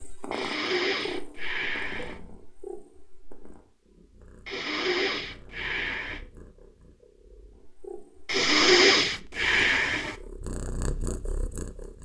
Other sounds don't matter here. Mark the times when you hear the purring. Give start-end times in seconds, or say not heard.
0.0-12.0.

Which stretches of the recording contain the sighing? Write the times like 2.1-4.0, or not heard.
0.3-2.1, 4.5-6.2, 8.2-10.2.